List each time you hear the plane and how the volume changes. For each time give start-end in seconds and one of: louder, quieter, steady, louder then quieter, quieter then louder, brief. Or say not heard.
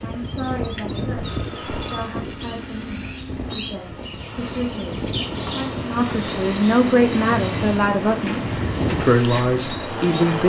0.0-10.4 quieter then louder.